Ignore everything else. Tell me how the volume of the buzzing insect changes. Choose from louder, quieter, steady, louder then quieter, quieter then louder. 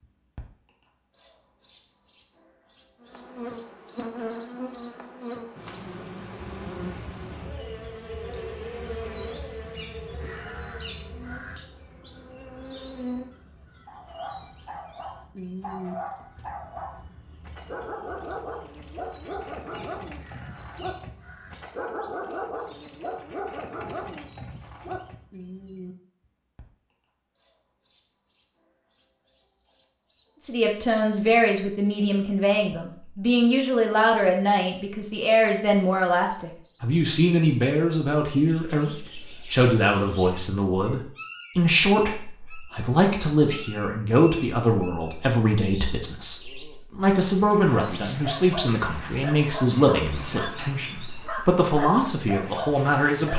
quieter.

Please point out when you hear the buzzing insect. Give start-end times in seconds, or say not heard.
3.0-13.3.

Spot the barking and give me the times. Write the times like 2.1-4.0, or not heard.
13.8-25.1, 47.4-53.3.